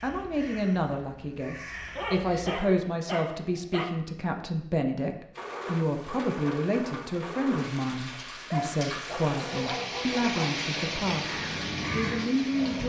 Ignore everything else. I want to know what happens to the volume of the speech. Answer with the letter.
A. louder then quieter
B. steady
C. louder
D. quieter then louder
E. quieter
B.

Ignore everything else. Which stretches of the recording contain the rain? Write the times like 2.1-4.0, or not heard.
5.3-12.8.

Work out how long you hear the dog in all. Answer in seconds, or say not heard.
4 s.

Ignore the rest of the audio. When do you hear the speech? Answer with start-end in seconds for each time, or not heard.
0.0-12.8.